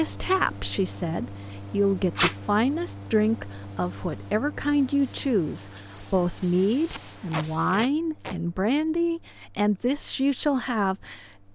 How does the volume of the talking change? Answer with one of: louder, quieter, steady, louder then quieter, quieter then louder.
steady.